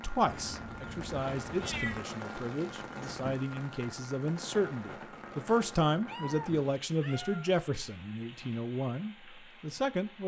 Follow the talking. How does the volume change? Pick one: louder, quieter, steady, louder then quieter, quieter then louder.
louder then quieter.